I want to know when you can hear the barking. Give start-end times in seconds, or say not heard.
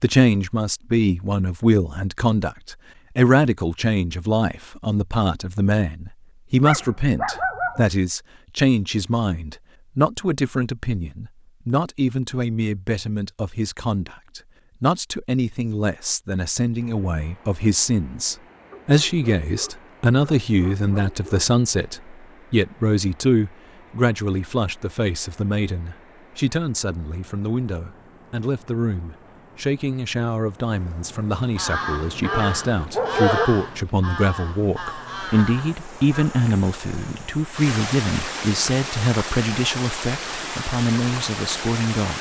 6.6-7.9, 18.7-21.6, 32.2-33.5.